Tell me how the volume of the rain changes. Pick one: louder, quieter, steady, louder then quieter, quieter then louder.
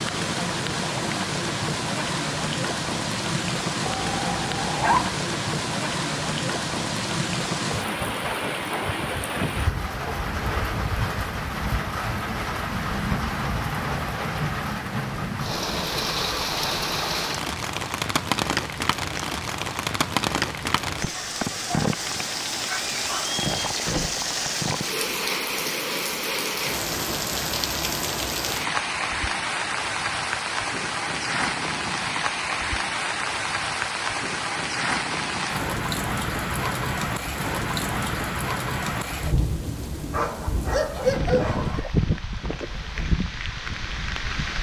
steady.